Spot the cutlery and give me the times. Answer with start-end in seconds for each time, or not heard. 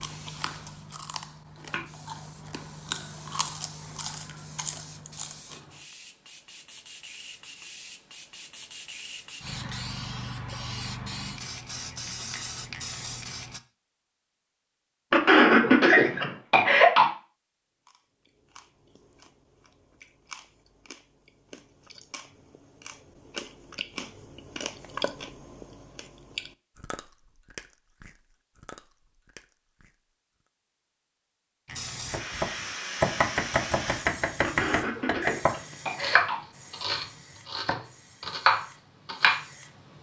not heard.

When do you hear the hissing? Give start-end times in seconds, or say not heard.
0.0-13.6, 31.6-39.9.